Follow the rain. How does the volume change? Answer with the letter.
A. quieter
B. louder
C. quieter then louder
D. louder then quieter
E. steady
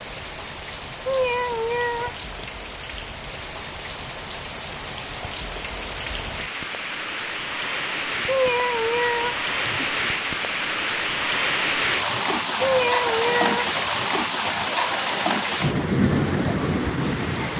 B.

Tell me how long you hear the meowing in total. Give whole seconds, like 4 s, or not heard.
4 s.